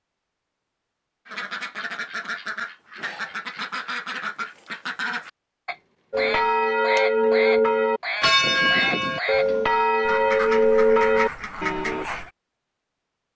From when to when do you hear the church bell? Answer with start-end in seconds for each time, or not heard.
6.1-12.1.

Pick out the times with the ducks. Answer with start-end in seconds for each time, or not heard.
1.2-12.3.